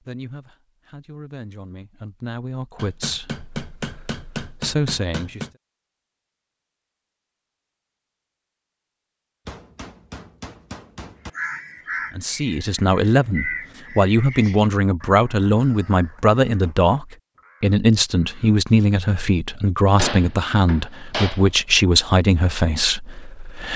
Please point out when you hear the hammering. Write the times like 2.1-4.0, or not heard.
2.8-5.5, 9.4-11.3, 19.9-21.5.